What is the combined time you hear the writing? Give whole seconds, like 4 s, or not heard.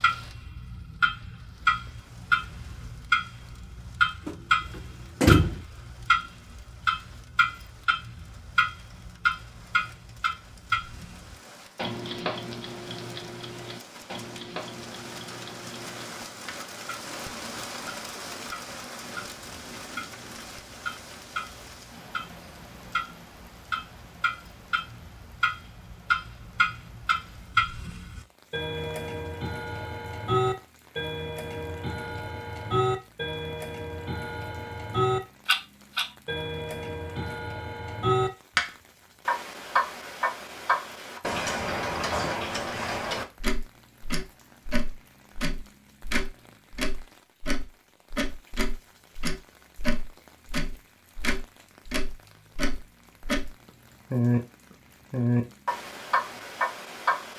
not heard.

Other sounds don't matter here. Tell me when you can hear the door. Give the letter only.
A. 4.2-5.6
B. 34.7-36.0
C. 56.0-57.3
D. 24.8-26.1
A.